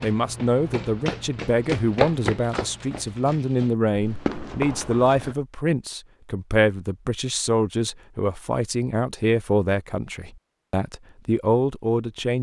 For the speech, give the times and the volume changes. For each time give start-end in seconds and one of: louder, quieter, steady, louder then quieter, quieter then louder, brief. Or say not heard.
0.0-12.3 steady.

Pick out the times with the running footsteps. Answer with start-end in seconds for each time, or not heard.
0.0-5.3.